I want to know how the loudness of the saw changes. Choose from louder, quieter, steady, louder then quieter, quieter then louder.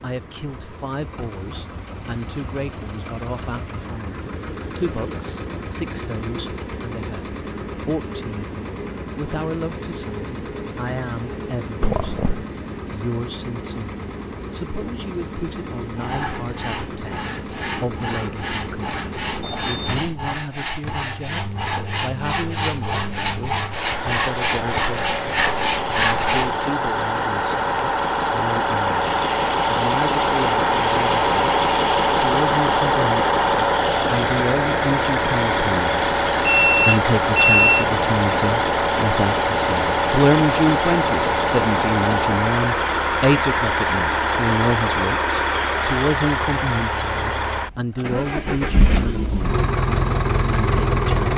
louder.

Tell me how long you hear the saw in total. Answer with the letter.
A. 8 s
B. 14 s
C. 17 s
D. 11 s
D.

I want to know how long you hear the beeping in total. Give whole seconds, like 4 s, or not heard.
3 s.